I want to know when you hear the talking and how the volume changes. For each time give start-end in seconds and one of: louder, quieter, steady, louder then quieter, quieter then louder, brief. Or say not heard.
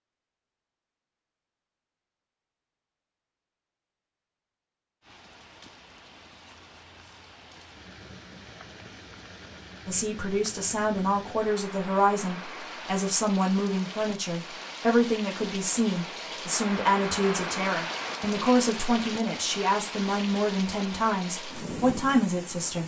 9.8-22.8 steady.